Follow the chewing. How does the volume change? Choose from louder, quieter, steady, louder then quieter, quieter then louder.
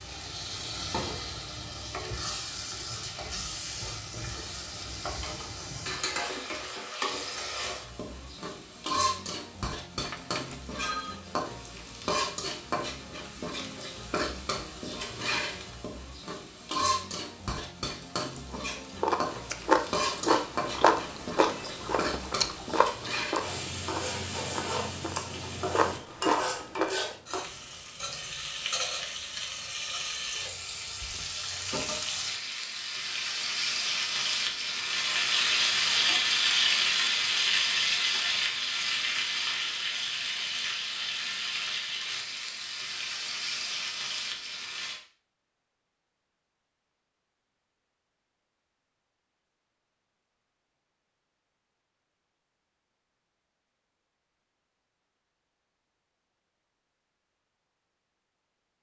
quieter then louder.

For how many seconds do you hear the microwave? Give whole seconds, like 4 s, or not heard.
not heard.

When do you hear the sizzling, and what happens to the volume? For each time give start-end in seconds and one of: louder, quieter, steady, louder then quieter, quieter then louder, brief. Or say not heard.
0.0-45.0 louder.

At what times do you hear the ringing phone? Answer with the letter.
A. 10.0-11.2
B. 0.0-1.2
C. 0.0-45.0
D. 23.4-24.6
A.